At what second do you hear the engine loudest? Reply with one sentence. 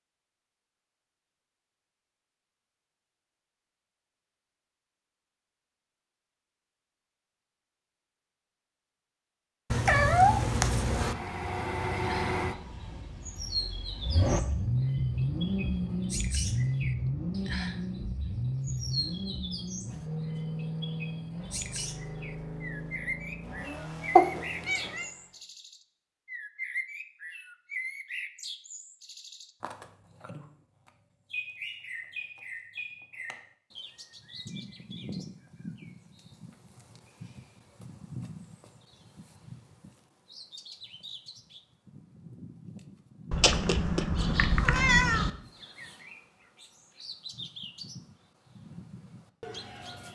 The volume of the engine peaks at 15 seconds.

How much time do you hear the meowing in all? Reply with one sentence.
You can hear the meowing for 4 seconds altogether.